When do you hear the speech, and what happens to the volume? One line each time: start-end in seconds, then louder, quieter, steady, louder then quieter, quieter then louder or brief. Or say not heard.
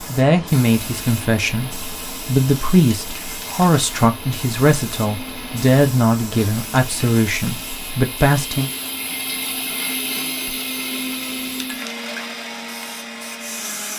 0.0-8.7 steady.